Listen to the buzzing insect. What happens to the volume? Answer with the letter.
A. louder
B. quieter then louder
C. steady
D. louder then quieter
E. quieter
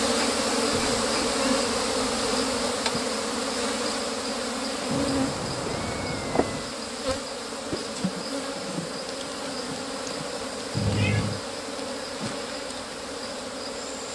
E.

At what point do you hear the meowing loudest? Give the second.
11 s.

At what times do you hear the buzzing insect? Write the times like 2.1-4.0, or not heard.
0.0-14.1.